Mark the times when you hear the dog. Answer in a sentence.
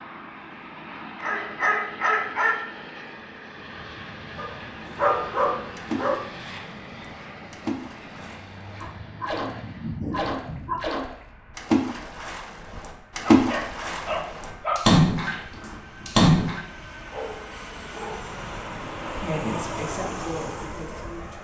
The dog can be heard from 1.1 to 2.5 s, from 4.3 to 6.2 s, from 8.8 to 10.8 s, from 13.2 to 15.0 s and from 17.1 to 18.4 s.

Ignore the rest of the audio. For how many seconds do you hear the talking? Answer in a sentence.
The talking can be heard for 2 seconds in total.